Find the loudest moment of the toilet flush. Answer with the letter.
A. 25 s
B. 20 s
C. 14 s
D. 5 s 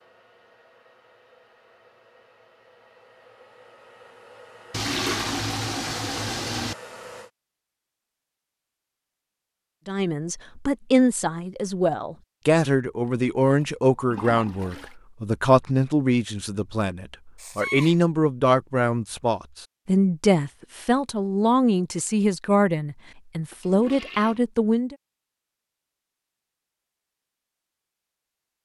D.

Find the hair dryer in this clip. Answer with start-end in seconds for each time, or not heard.
0.0-7.3.